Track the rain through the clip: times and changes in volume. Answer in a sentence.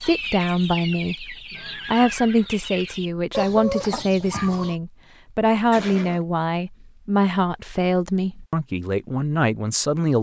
You can't hear the rain here.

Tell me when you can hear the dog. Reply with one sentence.
The dog can't be heard in this clip.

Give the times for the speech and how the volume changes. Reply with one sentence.
You can hear the speech from 0.0 to 10.1 s, at a steady volume.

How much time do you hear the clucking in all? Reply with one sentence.
You can hear the clucking for 5 seconds altogether.